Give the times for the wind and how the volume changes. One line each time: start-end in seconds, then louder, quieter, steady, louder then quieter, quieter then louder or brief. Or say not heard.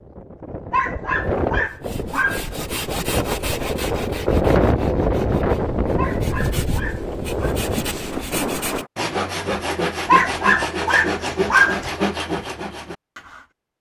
0.0-8.9 louder then quieter.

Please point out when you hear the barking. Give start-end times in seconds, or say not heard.
0.7-2.5, 6.0-7.5, 10.1-11.9.